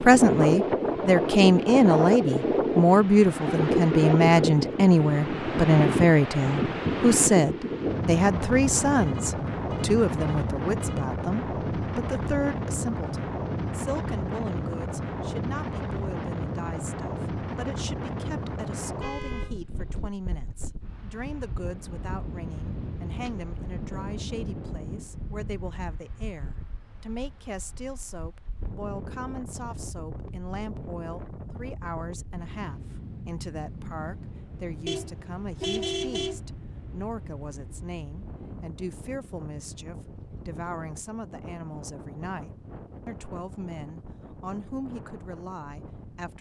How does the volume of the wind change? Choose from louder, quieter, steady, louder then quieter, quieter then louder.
quieter.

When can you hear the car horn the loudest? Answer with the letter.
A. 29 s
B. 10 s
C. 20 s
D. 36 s
D.